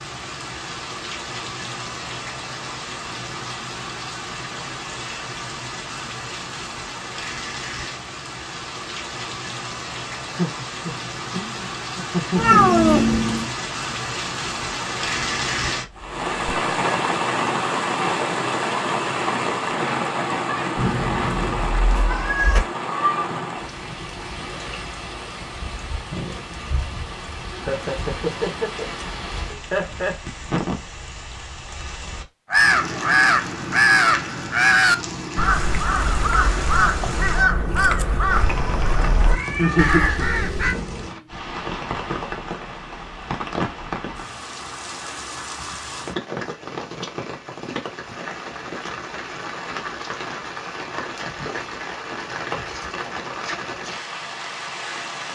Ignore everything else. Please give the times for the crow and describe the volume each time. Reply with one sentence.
You can hear the crow from 32.5 to 40.8 s, getting quieter.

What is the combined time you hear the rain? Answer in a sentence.
The rain can be heard for 55 seconds in total.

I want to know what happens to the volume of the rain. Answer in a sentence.
The loudness of the rain goes up, then down.